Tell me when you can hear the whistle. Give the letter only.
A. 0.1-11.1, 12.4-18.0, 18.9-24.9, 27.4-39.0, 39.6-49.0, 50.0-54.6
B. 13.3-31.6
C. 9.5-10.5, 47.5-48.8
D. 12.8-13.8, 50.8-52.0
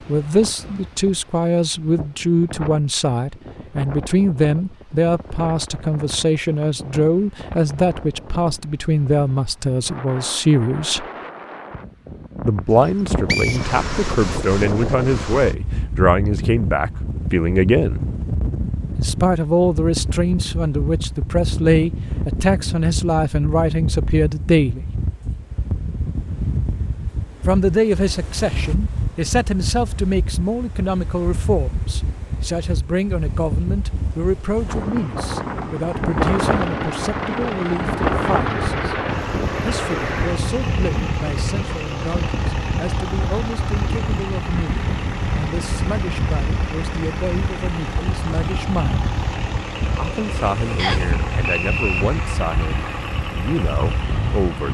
D.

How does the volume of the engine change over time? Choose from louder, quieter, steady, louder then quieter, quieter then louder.
steady.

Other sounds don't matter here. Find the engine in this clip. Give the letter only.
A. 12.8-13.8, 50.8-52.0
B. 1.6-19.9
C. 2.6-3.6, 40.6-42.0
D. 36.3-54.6
D.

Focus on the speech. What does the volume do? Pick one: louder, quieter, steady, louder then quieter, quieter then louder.
quieter.